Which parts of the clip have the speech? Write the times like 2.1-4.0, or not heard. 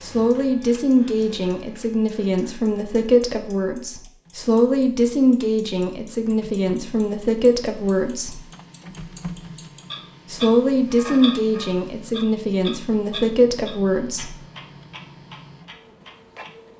0.0-8.4, 10.3-14.3.